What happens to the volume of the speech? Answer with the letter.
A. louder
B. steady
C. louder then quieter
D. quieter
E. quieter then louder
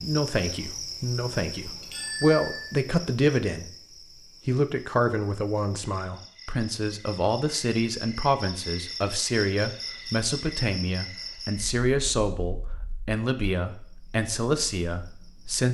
B.